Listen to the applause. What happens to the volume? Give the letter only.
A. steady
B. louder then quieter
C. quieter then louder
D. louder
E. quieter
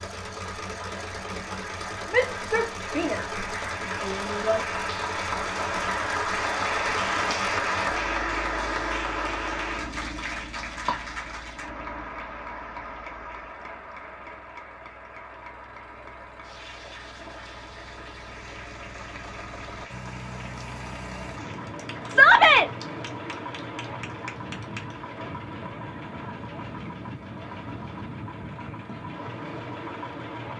B.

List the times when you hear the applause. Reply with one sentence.
The applause can be heard from 0.0 to 25.0 s.